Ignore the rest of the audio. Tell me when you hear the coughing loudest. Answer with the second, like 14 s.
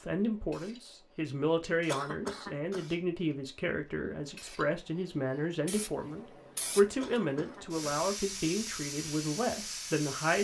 2 s.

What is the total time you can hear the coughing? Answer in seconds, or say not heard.
2 s.